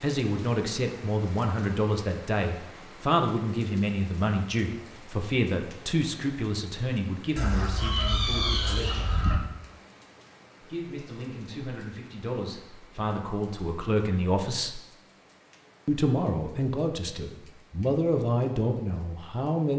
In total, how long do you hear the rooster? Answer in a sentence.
You can hear the rooster for 2 seconds altogether.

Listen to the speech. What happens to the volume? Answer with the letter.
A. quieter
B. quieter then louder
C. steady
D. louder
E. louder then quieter
B.